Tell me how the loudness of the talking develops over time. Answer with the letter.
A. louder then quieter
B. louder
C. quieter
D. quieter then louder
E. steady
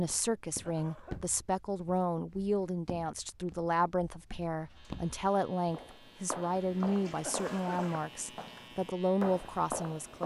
E.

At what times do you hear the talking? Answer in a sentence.
The talking can be heard from 0.0 to 10.2 s.